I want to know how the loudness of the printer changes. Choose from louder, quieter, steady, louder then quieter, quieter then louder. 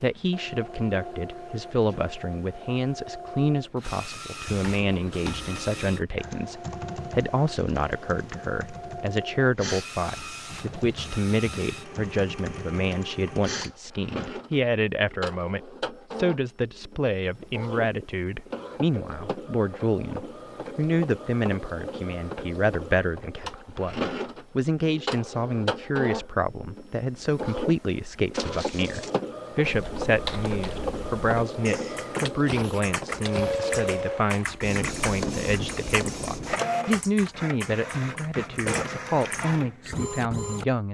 louder.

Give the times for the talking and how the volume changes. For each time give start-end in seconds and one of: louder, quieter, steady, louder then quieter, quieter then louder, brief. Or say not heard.
0.0-40.8 steady.